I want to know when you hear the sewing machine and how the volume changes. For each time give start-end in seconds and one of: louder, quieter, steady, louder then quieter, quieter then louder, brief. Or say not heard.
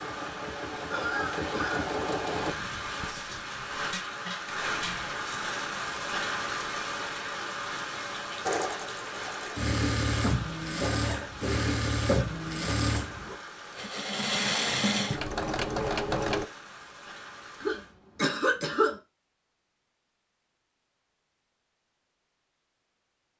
0.0-2.5 brief
8.4-16.5 steady.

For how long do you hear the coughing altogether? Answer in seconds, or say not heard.
4 s.